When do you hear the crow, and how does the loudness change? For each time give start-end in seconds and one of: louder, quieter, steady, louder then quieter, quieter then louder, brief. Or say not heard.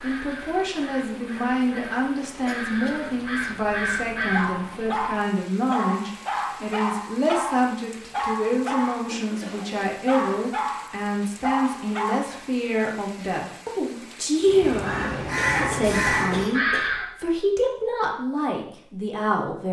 0.0-4.5 louder
14.4-17.1 brief.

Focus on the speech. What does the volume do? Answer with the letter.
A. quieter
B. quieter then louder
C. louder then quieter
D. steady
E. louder
D.